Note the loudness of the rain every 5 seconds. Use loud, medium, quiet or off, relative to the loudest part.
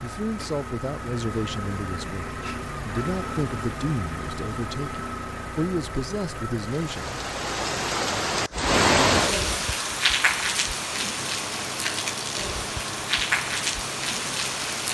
off, loud, loud.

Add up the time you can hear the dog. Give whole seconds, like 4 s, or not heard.
not heard.